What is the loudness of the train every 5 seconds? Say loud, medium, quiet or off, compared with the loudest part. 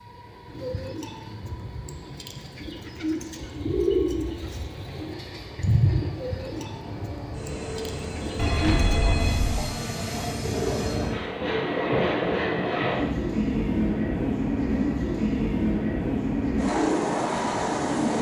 quiet, medium, loud, loud.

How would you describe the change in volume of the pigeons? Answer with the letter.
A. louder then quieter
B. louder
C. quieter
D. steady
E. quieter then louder
A.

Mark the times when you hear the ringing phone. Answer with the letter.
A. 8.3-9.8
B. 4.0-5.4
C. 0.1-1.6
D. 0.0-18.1
A.